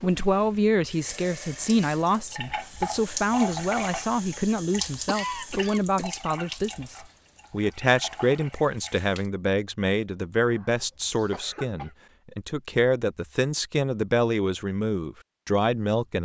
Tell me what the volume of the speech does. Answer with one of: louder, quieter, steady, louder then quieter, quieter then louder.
steady.